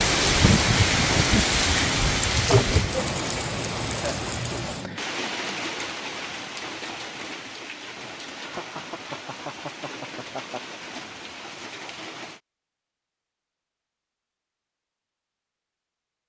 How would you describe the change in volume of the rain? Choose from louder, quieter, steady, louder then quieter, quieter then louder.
quieter.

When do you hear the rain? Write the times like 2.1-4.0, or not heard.
0.0-12.4.